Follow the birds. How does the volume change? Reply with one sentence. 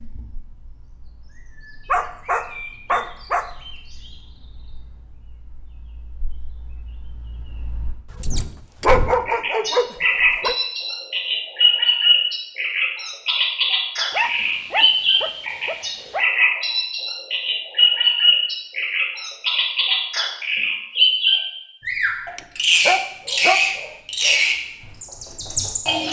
The volume of the birds goes up.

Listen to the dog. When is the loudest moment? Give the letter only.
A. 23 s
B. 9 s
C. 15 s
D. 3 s
B.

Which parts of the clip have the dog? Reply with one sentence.
You can hear the dog from 1.9 to 3.5 s, from 8.1 to 10.6 s, from 14.1 to 16.2 s and from 22.2 to 24.4 s.